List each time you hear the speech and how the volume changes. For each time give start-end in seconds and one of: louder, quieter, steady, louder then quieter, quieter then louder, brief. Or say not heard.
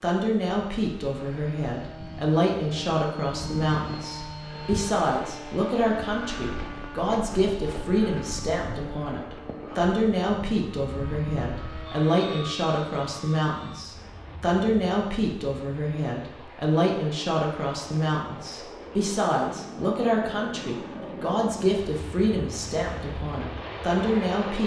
0.0-24.6 steady.